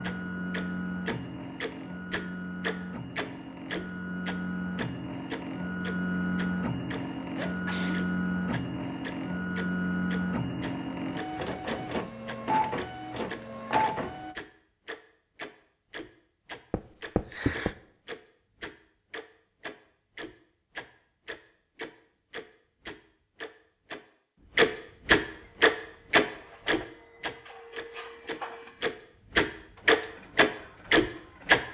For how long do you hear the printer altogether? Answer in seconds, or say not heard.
21 s.